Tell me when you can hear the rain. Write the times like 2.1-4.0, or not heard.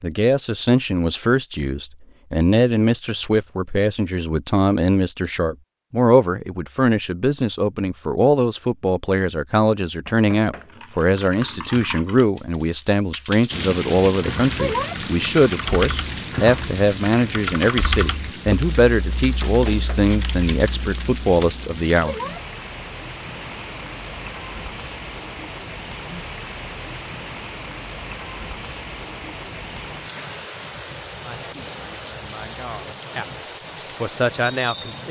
13.5-35.0.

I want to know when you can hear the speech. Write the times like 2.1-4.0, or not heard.
0.0-22.1, 31.2-35.0.